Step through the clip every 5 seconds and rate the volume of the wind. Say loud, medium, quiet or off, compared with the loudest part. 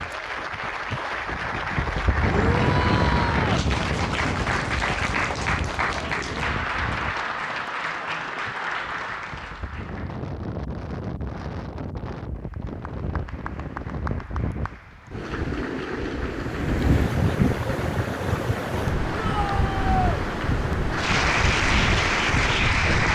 loud, medium, medium, loud, loud.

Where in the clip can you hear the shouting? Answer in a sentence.
The shouting can be heard from 2.2 to 3.5 s and from 19.1 to 20.2 s.